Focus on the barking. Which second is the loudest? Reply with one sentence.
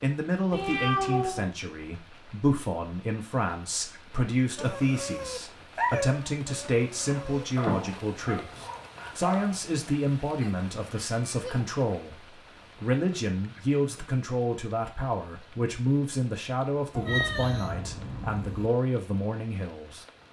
The volume of the barking peaks at 6 seconds.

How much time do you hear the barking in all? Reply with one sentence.
You can hear the barking for 5 seconds altogether.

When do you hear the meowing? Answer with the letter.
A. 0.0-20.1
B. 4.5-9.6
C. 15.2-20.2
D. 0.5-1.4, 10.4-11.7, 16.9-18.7
D.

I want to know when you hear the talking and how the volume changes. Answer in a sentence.
You can hear the talking from 0.0 to 20.1 s, at a steady volume.